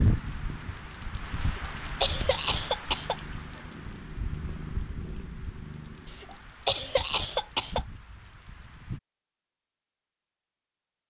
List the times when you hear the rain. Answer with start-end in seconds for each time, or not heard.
0.0-9.0.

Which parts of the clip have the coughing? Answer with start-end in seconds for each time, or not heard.
1.4-3.1, 6.1-7.8.